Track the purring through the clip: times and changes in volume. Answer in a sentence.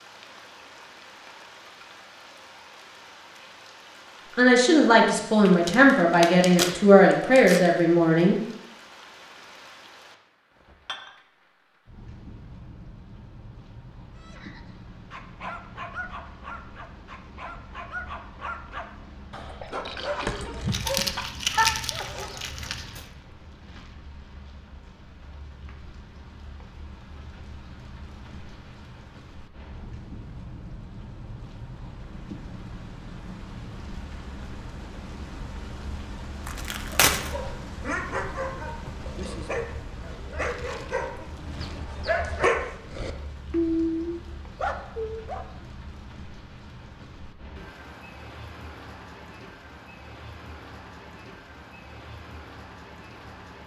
The purring can't be heard in this clip.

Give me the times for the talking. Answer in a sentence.
The talking can be heard from 4.3 to 8.4 s.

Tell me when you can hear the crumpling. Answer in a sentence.
You can hear the crumpling from 5.5 to 7.7 s, from 20.7 to 23.1 s and from 36.5 to 37.3 s.